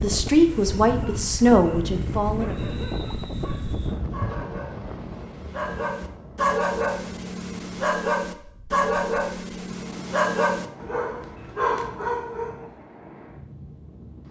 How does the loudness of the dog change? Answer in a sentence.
The volume of the dog goes up.